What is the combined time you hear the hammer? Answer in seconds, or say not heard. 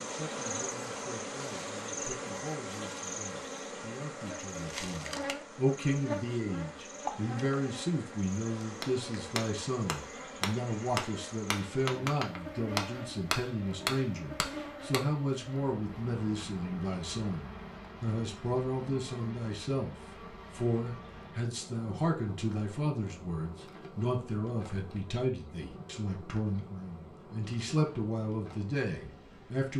6 s.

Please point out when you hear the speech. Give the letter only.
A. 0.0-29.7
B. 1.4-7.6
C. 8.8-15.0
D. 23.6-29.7
A.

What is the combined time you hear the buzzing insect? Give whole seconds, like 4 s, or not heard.
30 s.